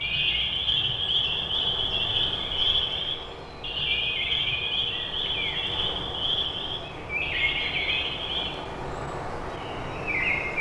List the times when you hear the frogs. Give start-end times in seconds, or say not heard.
0.0-8.6.